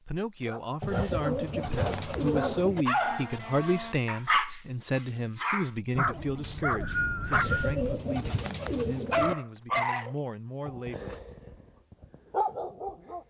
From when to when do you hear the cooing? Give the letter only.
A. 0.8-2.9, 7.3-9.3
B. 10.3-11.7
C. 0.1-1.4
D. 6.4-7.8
A.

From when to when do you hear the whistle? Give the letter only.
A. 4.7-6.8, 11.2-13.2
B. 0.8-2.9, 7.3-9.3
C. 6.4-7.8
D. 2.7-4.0
C.